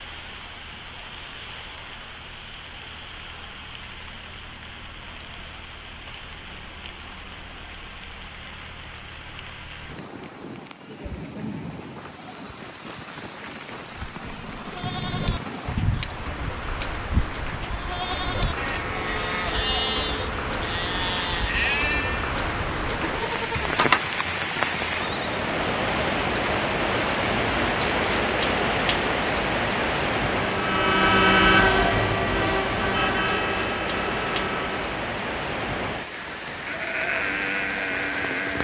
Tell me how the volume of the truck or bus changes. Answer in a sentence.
The loudness of the truck or bus goes down.